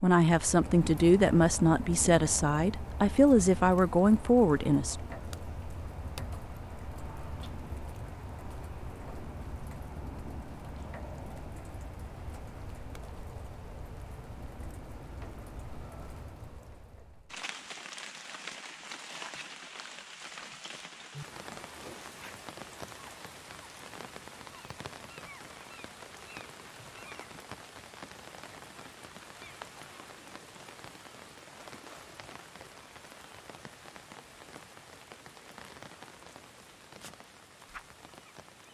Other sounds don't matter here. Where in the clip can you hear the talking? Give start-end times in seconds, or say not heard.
0.0-5.0.